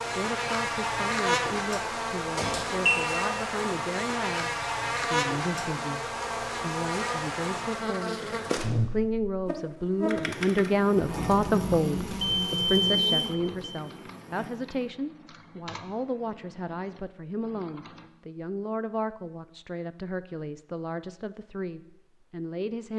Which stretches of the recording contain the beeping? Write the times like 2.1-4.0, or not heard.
2.4-3.1, 12.2-13.5.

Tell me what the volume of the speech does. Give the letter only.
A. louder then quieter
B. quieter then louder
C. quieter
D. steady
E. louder
A.